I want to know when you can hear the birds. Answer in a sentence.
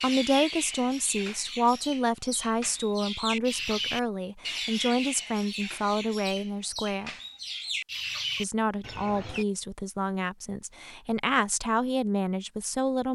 The birds can be heard from 0.0 to 9.4 s.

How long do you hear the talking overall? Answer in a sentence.
The talking can be heard for 12 seconds in total.